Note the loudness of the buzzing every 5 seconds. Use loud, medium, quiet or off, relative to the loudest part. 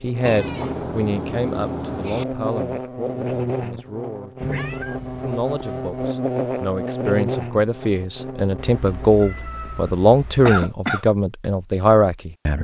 loud, loud, off.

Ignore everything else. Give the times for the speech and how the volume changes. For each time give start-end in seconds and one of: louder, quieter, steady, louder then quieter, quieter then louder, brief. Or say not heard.
0.0-12.5 quieter then louder.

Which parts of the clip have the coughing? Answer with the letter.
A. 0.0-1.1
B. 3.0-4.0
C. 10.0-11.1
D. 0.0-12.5
C.